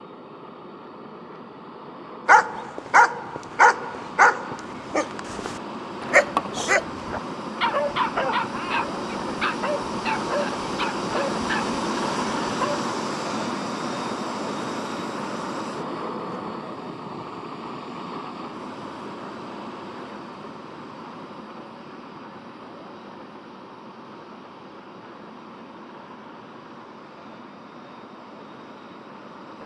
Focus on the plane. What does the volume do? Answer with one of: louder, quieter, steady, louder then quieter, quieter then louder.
louder then quieter.